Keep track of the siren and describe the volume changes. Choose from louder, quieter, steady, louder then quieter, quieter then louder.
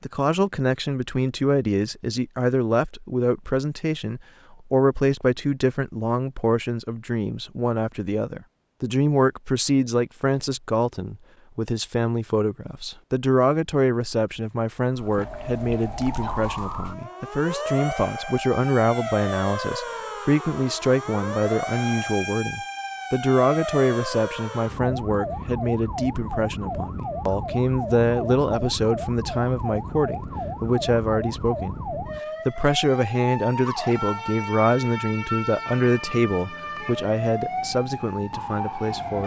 steady.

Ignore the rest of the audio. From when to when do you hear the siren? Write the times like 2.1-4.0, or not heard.
14.9-39.2.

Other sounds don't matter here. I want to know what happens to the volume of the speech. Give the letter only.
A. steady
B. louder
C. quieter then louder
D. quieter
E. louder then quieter
A.